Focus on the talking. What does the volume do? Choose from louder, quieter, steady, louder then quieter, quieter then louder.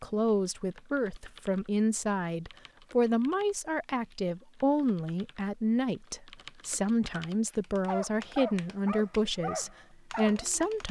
steady.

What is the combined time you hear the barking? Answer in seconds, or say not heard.
3 s.